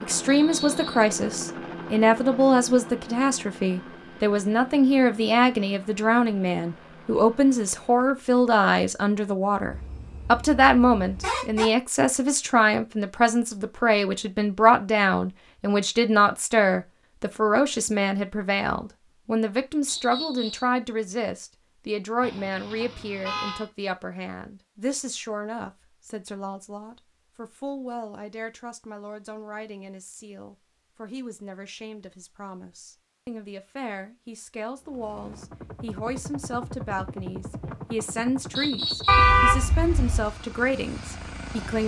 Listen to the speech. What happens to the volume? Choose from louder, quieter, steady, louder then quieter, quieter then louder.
quieter then louder.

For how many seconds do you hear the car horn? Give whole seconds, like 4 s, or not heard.
5 s.